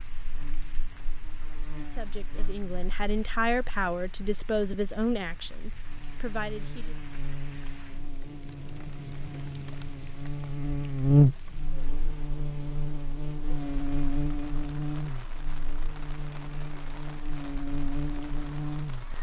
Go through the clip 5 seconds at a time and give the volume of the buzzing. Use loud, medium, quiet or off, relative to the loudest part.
quiet, quiet, loud, medium.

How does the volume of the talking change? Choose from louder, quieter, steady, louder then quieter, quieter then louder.
louder then quieter.